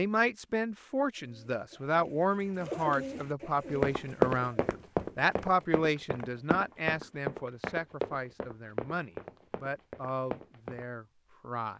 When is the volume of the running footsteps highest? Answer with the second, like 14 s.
4 s.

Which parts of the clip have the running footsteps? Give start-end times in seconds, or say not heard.
3.8-10.8.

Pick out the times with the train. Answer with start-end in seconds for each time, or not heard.
not heard.